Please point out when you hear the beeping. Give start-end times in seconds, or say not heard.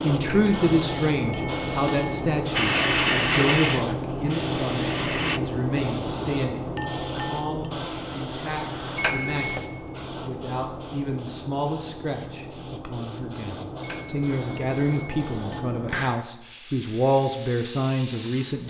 0.2-2.2, 8.9-9.7, 13.8-15.2.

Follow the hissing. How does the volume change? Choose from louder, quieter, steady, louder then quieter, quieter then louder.
quieter.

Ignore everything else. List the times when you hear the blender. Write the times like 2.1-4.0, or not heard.
2.5-5.4.